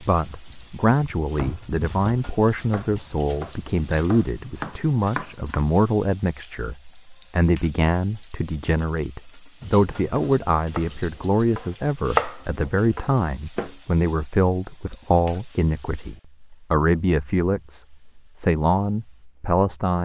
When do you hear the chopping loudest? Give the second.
12 s.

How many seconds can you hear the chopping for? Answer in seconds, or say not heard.
9 s.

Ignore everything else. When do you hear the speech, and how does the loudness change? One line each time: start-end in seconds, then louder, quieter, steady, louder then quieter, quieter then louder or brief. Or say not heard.
0.0-19.9 steady.